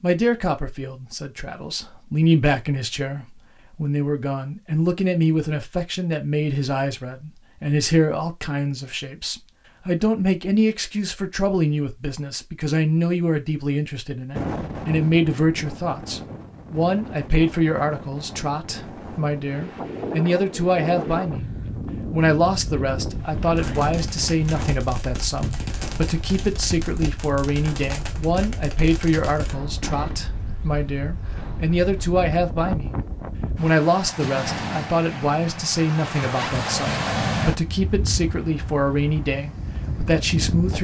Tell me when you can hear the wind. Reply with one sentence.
The wind can be heard from 14.3 to 40.7 s.